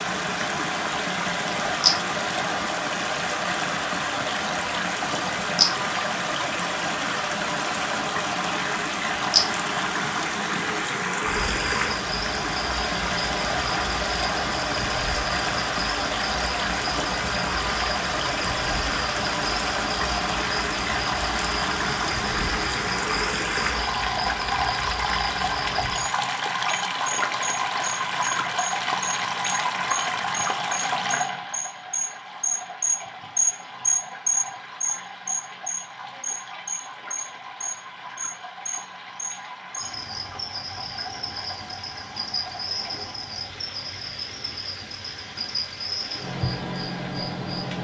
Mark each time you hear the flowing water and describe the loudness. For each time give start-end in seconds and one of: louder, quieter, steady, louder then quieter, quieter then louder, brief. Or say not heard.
0.0-47.7 quieter.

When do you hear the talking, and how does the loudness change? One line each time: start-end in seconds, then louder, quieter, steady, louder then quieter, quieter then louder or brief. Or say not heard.
not heard.